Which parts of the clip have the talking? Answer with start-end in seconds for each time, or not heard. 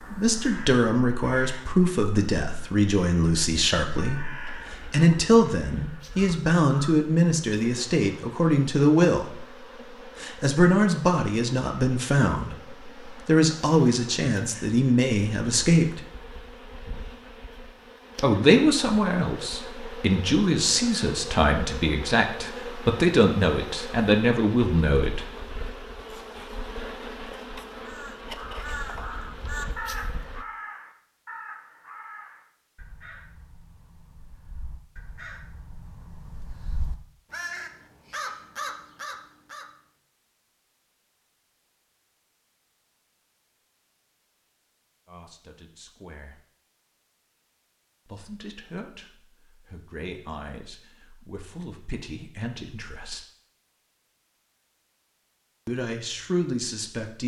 0.0-16.1, 18.2-25.2, 45.0-46.5, 48.0-53.2, 55.6-57.2.